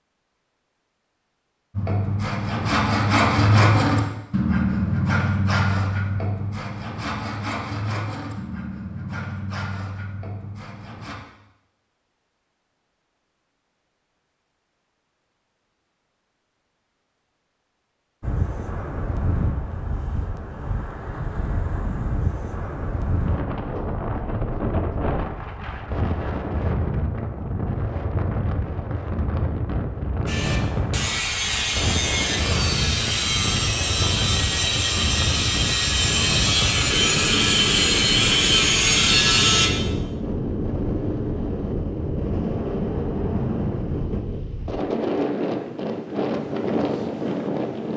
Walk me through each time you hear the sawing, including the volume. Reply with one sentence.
You can hear the sawing from 1.7 to 11.2 s, getting quieter; and from 30.2 to 39.7 s, getting louder.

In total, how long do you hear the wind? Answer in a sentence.
The wind can be heard for 30 seconds in total.